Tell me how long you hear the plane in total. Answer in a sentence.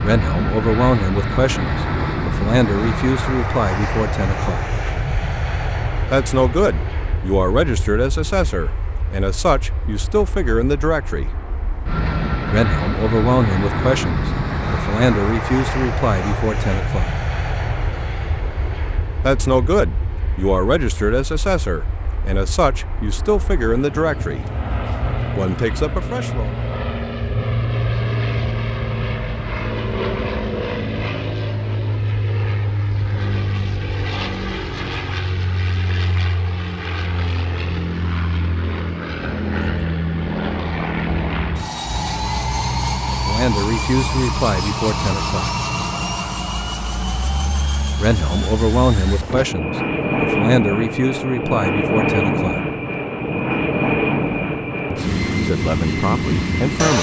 The plane can be heard for 57 seconds in total.